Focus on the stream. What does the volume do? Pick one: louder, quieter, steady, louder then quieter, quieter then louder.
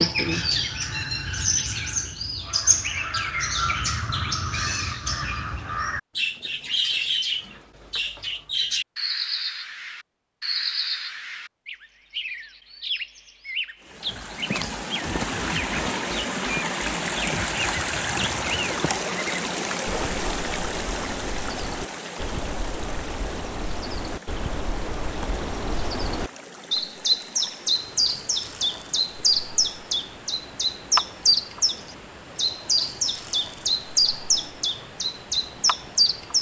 quieter.